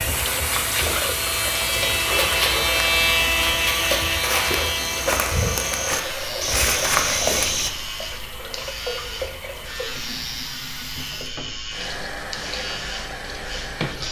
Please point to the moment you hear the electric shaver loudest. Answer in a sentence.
The loudest moment of the electric shaver is at 3 seconds.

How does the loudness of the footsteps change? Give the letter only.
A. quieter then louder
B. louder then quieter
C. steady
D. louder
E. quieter
D.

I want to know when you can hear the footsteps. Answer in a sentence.
The footsteps can be heard from 0.0 to 7.7 s.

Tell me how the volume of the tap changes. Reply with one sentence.
The loudness of the tap goes down.